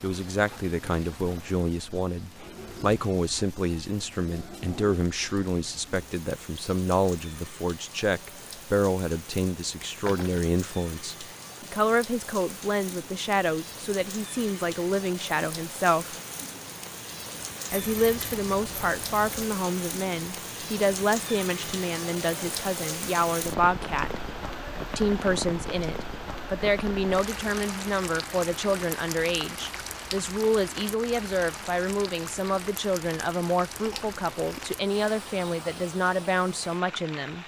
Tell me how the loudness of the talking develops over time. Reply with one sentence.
The loudness of the talking stays about the same.